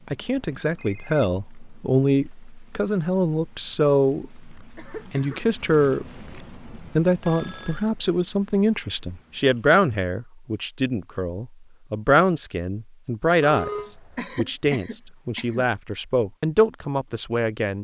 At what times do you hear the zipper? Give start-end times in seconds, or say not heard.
not heard.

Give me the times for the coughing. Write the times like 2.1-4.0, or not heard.
4.8-5.5, 14.2-15.7.